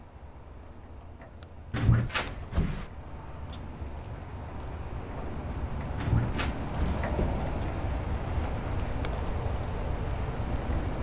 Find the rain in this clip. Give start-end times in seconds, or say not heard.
0.0-10.9.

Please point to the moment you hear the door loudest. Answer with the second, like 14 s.
2 s.